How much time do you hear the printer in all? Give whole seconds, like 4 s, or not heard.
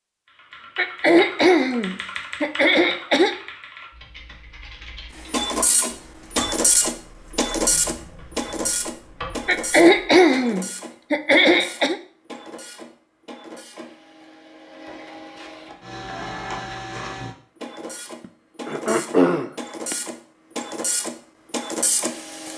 17 s.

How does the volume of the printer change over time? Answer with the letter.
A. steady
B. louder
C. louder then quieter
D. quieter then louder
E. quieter
D.